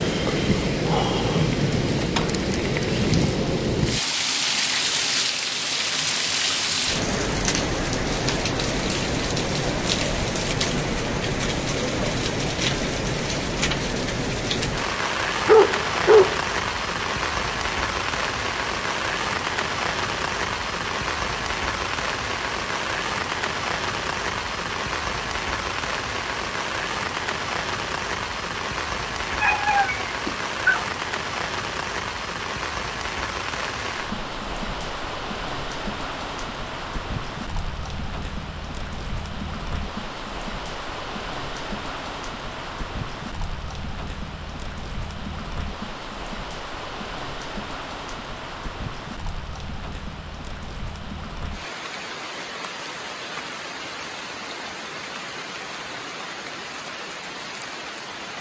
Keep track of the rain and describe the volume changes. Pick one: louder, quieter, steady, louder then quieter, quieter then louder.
quieter.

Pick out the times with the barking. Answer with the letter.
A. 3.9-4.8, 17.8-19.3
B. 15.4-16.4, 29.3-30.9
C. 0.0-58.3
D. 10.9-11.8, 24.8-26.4
B.